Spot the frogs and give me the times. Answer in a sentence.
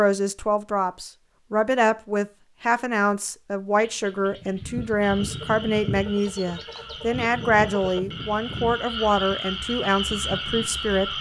The frogs can be heard from 5.0 to 11.1 s.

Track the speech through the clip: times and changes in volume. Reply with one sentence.
The speech can be heard from 0.0 to 11.1 s, at a steady volume.